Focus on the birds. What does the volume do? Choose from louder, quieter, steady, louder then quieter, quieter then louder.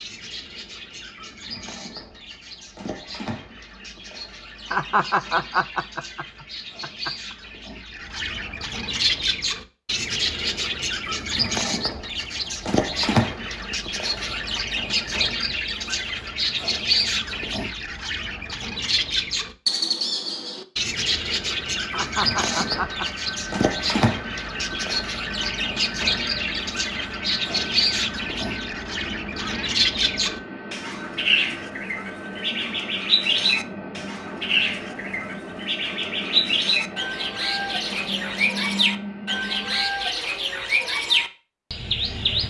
louder.